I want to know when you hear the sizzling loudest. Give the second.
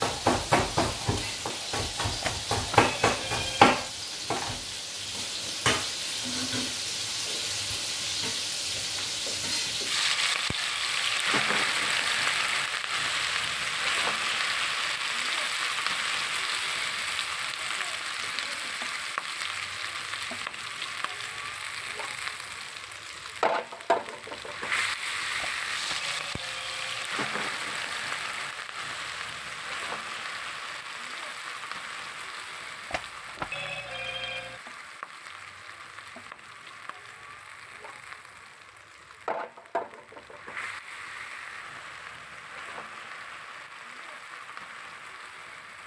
3 s.